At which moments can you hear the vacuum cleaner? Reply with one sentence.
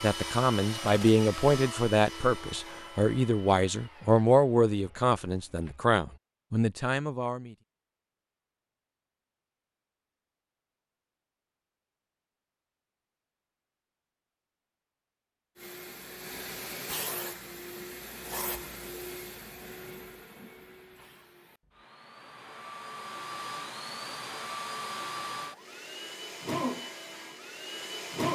The vacuum cleaner can be heard from 0.0 to 6.0 s and from 15.6 to 28.2 s.